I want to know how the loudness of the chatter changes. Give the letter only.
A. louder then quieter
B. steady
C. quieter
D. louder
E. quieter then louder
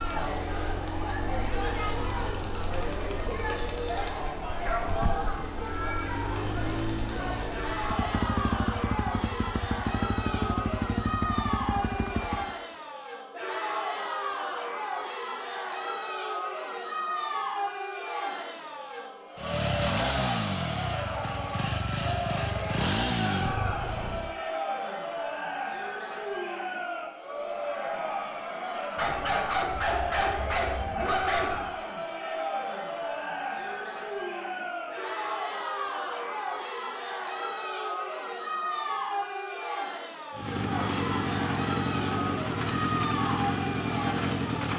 B.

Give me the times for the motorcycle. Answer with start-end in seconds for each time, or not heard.
0.0-12.6, 19.4-24.4, 40.3-44.7.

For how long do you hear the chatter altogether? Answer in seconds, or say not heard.
45 s.